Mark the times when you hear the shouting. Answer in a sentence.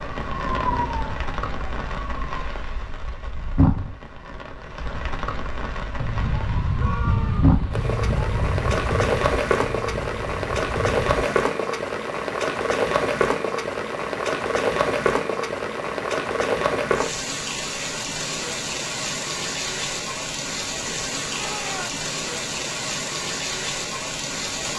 You can hear the shouting from 6.8 to 7.5 s and from 21.3 to 22.1 s.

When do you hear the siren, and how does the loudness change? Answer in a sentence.
The siren can be heard briefly from 0.0 to 2.3 s; and from 6.0 to 11.3 s, getting quieter.